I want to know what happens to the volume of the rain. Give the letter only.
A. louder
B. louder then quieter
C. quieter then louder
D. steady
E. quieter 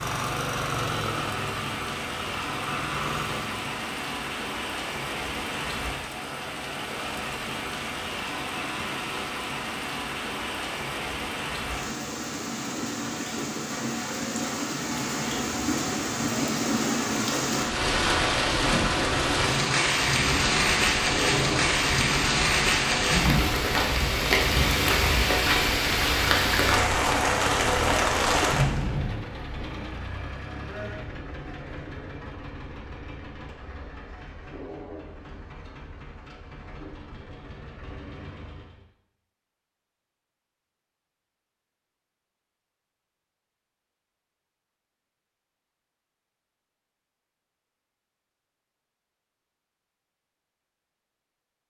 A.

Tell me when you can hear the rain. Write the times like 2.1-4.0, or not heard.
0.0-29.1.